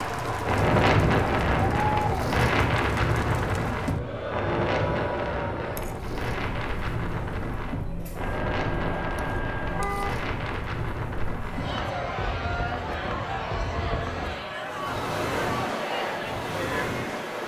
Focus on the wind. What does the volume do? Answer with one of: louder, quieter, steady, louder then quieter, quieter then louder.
quieter.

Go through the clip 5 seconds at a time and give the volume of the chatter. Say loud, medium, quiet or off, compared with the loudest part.
loud, medium, loud, loud.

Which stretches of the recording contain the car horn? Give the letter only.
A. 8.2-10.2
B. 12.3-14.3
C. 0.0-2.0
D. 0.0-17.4
A.